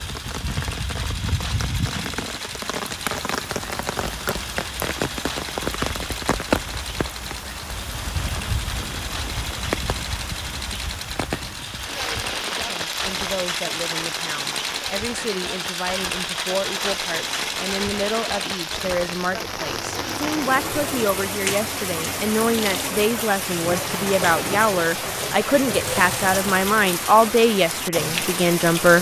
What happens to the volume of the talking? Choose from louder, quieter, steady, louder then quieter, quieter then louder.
louder.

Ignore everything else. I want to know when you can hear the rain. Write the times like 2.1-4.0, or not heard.
0.0-28.9.